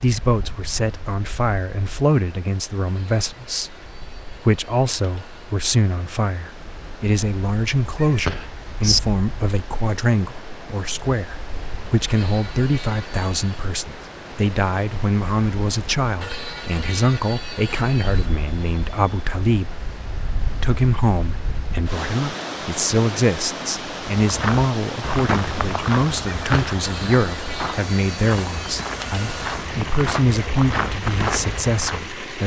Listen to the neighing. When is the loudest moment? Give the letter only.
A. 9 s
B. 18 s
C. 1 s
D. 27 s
A.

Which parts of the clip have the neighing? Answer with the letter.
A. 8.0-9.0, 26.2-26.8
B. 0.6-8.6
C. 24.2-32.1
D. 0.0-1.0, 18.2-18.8
A.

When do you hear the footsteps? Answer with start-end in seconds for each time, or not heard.
24.2-32.1.